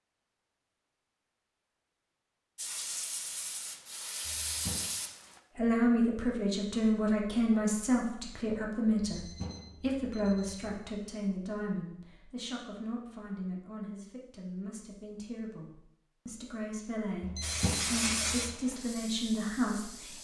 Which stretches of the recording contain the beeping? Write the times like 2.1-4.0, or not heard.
4.2-4.9, 9.1-10.8, 17.2-18.6.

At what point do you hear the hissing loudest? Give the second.
18 s.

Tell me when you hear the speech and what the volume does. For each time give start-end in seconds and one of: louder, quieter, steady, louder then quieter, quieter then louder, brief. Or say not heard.
5.5-20.1 quieter then louder.